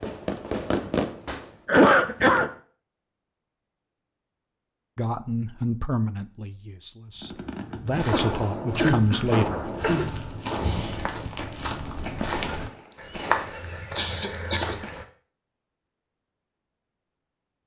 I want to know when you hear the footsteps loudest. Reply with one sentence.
The loudest moment of the footsteps is at 13 seconds.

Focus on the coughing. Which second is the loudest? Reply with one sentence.
The loudest moment of the coughing is at 2 seconds.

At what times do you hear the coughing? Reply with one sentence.
You can hear the coughing from 1.6 to 2.5 s, from 8.1 to 10.1 s and from 13.9 to 14.8 s.